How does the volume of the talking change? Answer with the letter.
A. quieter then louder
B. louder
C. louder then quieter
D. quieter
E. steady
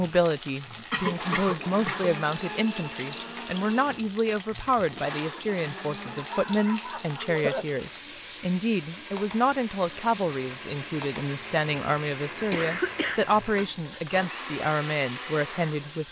E.